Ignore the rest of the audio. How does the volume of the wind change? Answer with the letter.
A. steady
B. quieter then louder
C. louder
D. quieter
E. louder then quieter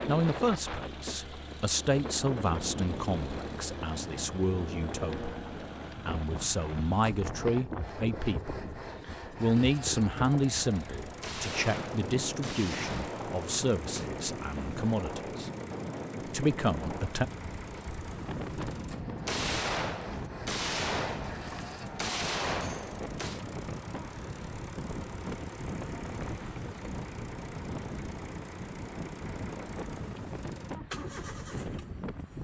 A.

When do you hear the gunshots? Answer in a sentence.
You can hear the gunshots from 11.2 to 14.1 s and from 19.2 to 23.4 s.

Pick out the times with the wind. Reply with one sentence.
The wind can be heard from 0.0 to 32.3 s.